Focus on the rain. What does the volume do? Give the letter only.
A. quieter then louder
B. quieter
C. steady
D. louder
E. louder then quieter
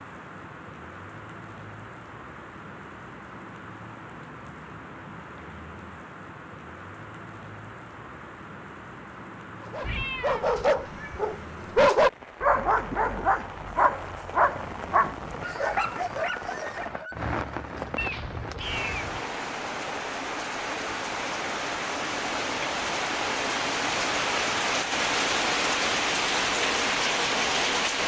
D.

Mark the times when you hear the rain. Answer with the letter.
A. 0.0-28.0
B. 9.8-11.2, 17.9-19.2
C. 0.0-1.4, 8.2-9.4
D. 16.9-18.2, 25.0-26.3
A.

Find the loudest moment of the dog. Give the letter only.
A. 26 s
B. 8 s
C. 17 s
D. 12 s
D.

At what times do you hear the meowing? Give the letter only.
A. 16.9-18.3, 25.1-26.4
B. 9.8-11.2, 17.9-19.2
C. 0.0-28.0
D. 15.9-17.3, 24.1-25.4
B.